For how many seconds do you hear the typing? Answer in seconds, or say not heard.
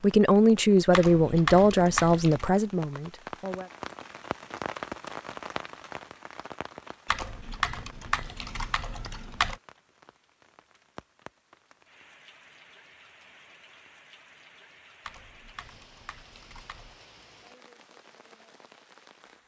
6 s.